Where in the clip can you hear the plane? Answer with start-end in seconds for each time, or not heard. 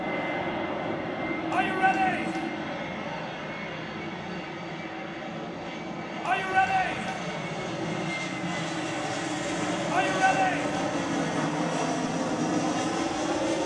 0.0-13.6.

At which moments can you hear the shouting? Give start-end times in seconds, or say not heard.
1.5-2.5, 6.2-7.2, 9.9-10.8.